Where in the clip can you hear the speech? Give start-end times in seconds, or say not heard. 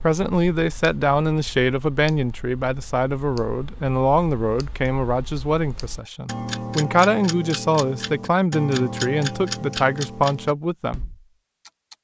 0.0-11.0.